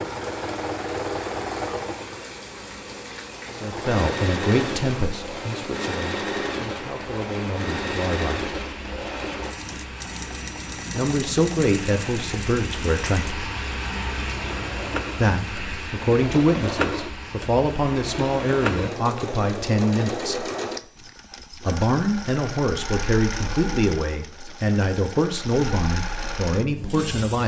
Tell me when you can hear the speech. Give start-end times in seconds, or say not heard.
3.6-8.4, 10.9-13.4, 15.2-20.4, 21.6-27.4.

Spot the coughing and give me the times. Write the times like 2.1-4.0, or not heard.
not heard.